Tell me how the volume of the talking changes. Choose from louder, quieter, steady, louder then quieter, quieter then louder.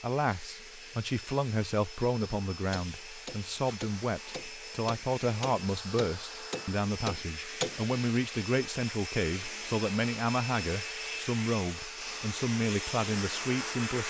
steady.